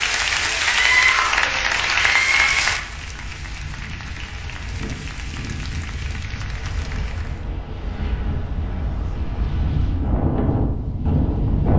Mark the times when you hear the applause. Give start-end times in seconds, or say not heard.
0.0-7.5.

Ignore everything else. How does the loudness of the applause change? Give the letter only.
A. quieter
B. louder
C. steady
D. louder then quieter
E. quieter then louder
A.